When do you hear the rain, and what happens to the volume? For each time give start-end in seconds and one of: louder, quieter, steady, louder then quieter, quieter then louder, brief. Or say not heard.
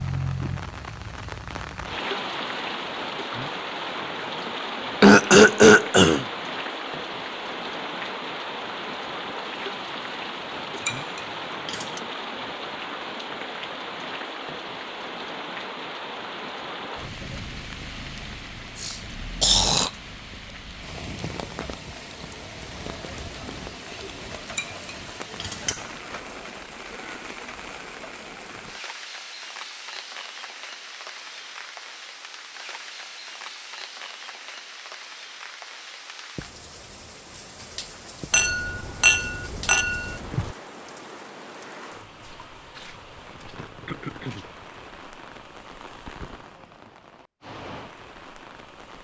0.0-48.9 quieter.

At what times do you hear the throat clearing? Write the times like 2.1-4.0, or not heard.
5.0-6.2, 18.8-19.9, 43.9-44.5.